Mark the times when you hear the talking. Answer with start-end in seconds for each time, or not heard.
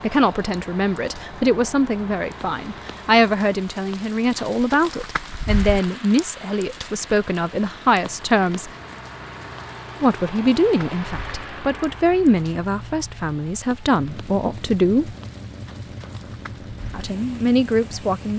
0.0-8.7, 10.0-15.2, 16.9-18.3.